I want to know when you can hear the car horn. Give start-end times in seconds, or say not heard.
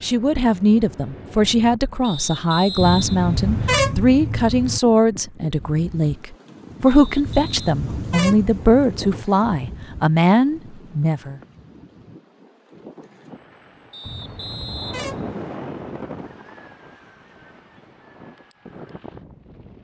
2.8-4.8, 7.2-9.2, 14.1-15.3.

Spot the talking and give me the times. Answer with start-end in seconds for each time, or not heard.
0.0-11.4.